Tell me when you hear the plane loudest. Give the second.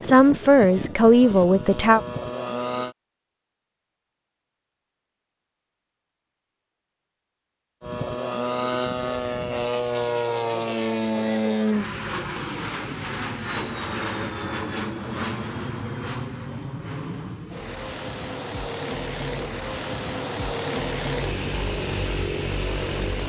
11 s.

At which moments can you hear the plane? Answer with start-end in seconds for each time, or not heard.
0.0-3.0, 7.8-23.2.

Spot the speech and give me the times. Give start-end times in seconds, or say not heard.
0.0-2.0.